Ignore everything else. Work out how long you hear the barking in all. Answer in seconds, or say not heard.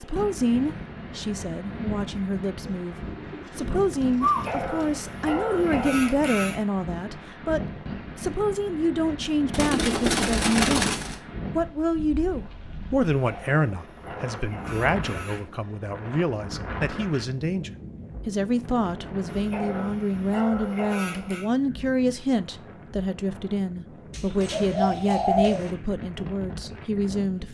7 s.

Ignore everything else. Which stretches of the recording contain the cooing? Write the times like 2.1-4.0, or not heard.
2.6-5.0, 9.5-11.2, 24.1-25.7.